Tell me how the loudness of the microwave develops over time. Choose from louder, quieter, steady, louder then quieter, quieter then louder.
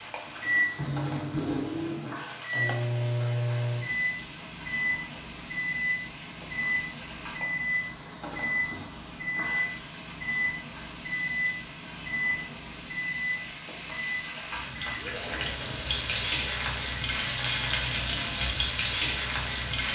quieter.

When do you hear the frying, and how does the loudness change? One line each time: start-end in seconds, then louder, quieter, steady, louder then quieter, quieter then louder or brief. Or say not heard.
0.0-19.9 louder.